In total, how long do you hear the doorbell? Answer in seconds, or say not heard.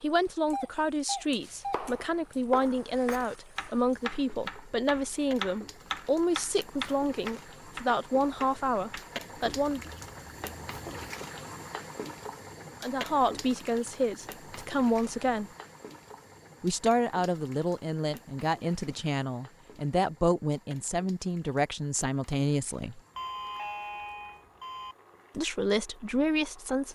3 s.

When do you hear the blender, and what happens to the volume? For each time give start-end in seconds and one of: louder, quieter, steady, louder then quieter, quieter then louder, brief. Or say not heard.
not heard.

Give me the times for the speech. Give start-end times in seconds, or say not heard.
0.0-9.9, 12.8-15.5, 16.6-23.0, 25.4-26.9.